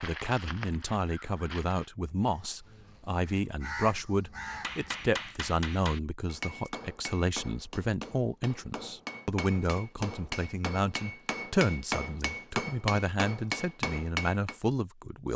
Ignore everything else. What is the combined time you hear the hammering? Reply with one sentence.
You can hear the hammering for 10 seconds altogether.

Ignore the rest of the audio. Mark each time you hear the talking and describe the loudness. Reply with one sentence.
The talking can be heard from 0.0 to 15.3 s, at a steady volume.